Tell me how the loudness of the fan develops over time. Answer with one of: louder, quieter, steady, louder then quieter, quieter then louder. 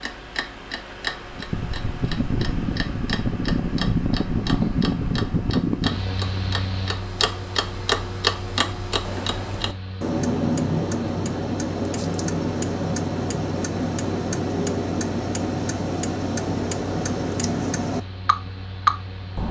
quieter.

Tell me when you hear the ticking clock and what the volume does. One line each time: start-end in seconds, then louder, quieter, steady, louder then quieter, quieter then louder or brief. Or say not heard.
0.0-19.4 louder.